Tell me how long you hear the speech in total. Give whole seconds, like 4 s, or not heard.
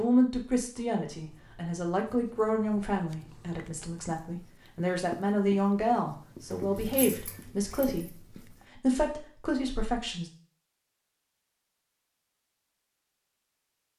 10 s.